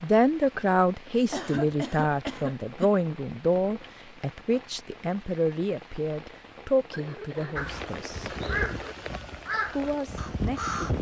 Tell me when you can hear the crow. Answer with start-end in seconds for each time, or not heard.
7.5-10.9.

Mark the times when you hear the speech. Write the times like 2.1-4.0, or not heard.
0.0-8.3, 9.7-10.9.